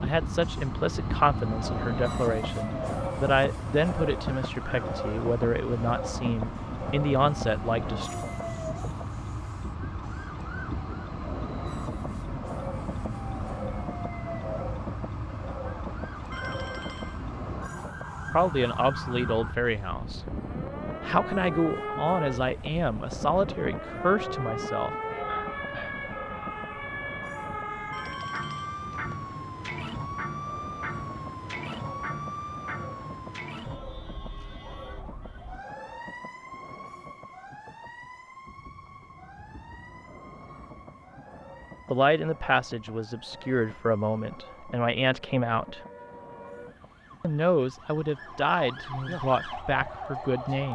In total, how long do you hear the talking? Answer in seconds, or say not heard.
21 s.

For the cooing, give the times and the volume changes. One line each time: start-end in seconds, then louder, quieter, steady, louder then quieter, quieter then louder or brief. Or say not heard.
not heard.